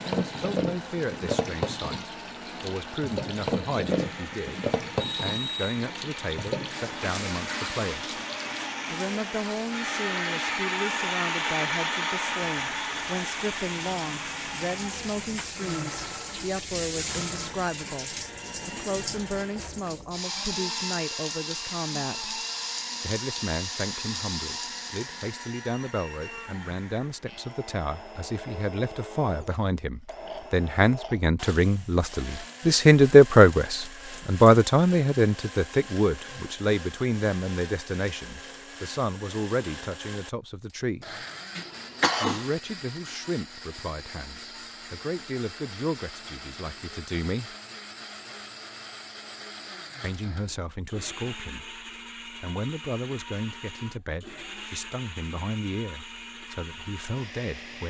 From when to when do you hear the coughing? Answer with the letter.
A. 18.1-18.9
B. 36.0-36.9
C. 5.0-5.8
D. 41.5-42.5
D.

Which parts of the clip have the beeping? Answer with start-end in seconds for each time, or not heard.
5.0-5.8.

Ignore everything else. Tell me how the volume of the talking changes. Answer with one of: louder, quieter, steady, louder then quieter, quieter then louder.
louder then quieter.